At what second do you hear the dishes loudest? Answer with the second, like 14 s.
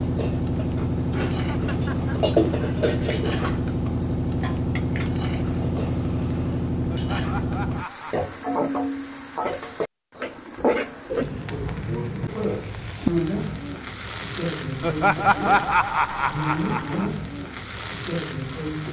2 s.